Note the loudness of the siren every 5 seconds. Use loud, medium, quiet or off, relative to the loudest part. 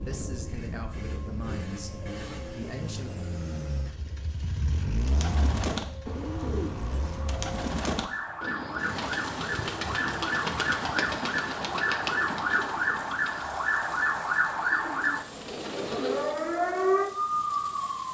quiet, medium, loud, loud.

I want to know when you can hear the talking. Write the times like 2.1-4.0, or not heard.
0.0-3.1.